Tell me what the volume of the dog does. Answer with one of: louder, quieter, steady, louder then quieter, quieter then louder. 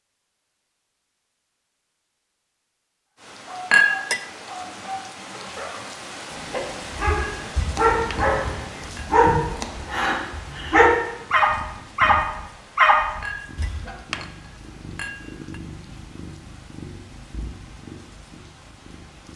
louder.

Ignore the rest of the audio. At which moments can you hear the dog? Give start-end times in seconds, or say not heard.
3.5-13.9.